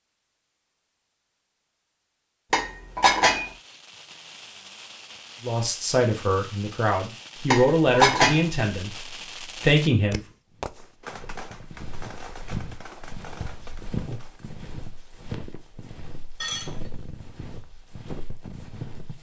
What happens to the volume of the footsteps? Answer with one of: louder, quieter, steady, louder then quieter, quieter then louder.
louder then quieter.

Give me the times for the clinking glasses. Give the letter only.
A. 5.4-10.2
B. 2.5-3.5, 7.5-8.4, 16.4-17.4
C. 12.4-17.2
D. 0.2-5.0
B.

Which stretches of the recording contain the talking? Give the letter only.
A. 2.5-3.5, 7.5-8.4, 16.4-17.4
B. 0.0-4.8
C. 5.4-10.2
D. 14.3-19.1
C.